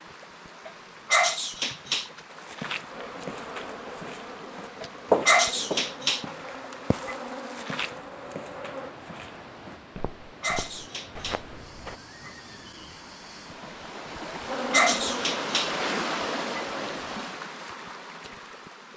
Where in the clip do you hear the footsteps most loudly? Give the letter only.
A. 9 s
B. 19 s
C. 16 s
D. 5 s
D.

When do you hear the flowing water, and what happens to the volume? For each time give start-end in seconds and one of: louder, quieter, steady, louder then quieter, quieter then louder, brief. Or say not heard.
0.0-18.9 louder.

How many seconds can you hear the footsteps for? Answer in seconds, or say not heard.
10 s.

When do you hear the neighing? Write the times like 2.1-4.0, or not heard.
11.9-13.1.